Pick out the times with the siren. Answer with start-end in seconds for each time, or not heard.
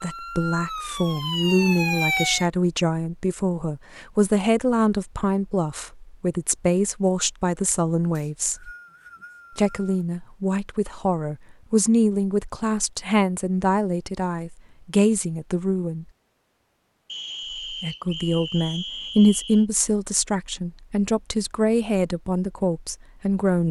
0.0-2.5.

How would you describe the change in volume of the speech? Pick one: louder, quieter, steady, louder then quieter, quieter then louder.
steady.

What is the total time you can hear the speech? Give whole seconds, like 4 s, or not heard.
21 s.